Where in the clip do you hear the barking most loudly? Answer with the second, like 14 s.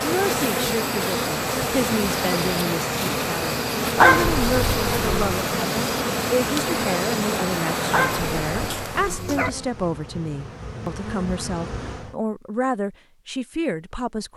4 s.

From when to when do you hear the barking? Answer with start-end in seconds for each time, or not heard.
4.0-5.5, 7.9-9.5.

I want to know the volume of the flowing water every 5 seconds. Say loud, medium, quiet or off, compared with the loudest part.
loud, loud, off.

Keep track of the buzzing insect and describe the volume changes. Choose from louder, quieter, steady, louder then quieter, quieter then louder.
quieter.